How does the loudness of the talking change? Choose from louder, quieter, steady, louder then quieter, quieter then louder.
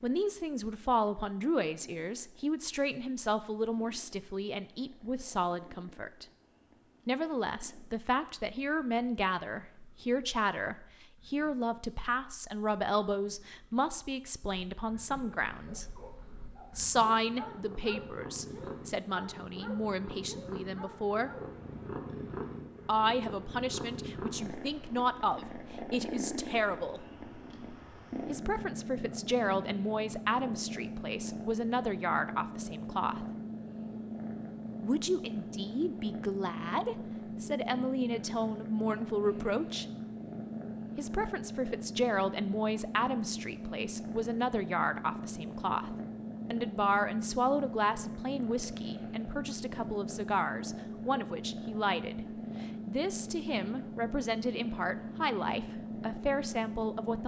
steady.